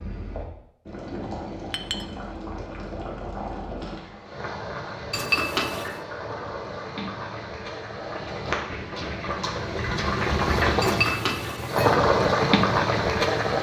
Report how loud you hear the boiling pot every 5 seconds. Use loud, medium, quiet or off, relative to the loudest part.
quiet, medium, loud.